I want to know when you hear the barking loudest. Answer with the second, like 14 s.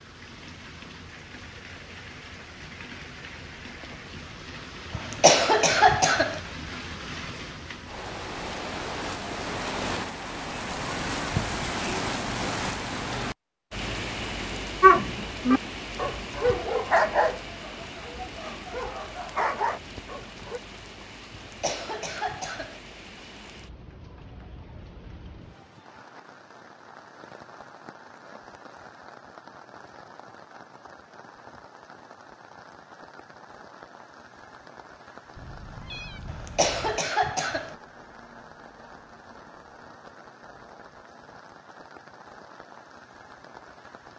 15 s.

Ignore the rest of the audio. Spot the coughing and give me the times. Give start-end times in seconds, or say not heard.
4.9-6.4, 21.3-22.8, 36.2-37.8.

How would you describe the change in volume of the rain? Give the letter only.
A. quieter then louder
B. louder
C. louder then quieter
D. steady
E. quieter
C.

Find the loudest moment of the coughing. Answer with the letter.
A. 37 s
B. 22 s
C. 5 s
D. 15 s
C.